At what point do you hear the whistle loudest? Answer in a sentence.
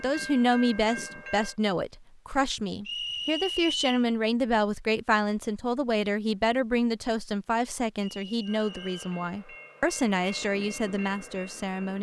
The volume of the whistle peaks at 4 seconds.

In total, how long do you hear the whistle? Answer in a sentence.
You can hear the whistle for 2 seconds altogether.